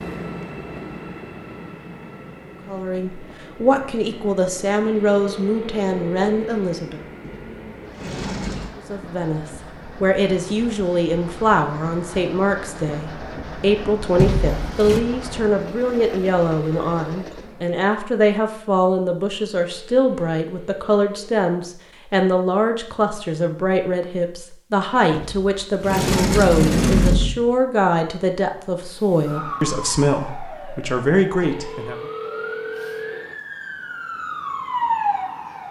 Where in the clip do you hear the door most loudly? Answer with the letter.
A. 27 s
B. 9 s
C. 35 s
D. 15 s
A.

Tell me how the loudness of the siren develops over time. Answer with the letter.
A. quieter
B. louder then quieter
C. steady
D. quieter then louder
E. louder
D.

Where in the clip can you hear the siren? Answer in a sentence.
The siren can be heard from 28.9 to 35.6 s.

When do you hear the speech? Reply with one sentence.
You can hear the speech from 2.6 to 7.0 s and from 8.8 to 31.9 s.